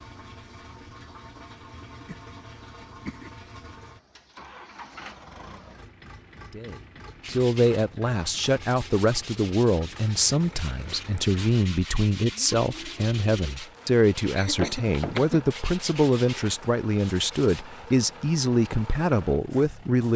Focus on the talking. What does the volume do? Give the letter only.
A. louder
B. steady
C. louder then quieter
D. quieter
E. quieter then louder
B.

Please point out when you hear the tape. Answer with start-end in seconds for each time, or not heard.
not heard.